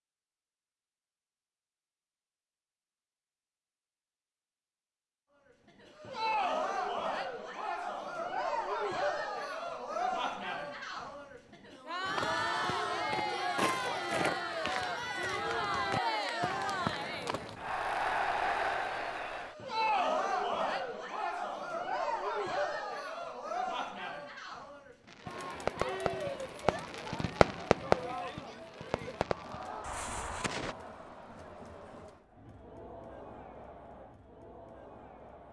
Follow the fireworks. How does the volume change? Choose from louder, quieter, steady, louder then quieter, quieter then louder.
louder then quieter.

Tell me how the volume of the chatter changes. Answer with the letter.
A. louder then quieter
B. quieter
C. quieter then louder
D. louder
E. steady
B.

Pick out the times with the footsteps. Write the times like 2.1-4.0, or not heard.
12.1-17.8.